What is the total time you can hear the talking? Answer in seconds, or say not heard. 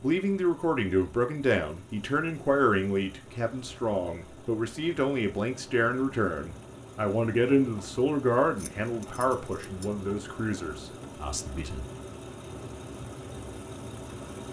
12 s.